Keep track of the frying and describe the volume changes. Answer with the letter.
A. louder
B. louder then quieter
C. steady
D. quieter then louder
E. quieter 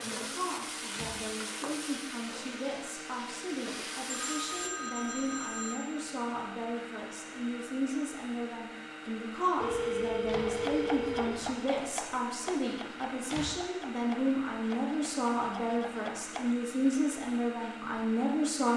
D.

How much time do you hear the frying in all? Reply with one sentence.
The frying can be heard for 5 seconds in total.